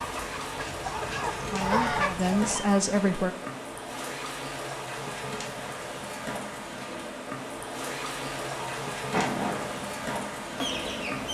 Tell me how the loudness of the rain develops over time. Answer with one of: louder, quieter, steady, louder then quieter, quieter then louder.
steady.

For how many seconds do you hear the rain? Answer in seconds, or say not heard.
11 s.